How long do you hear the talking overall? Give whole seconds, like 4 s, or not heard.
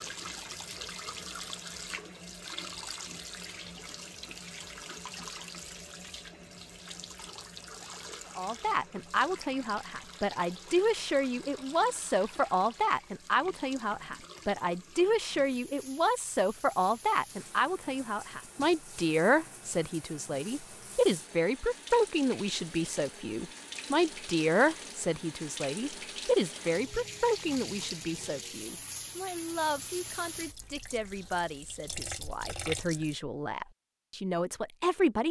27 s.